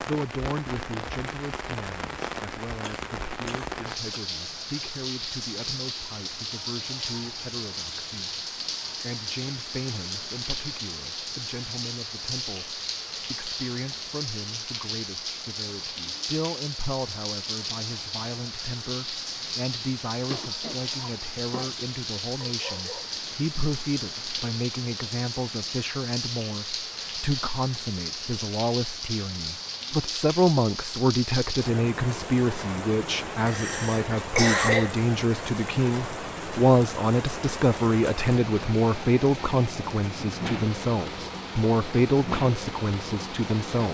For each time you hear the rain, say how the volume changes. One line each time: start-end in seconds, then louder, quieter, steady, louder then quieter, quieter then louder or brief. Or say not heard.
0.0-43.8 steady.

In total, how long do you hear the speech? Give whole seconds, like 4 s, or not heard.
43 s.